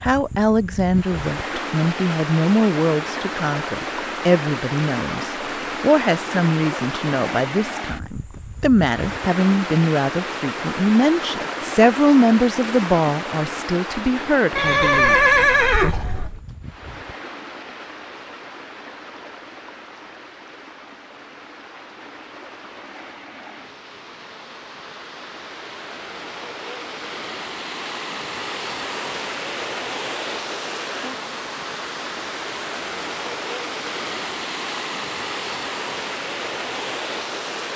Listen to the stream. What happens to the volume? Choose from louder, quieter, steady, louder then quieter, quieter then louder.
quieter then louder.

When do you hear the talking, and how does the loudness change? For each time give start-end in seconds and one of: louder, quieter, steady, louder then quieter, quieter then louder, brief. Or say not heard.
0.0-15.2 steady.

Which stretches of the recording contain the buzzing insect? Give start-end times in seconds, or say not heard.
not heard.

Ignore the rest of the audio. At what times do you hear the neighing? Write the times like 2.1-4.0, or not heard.
14.6-16.4.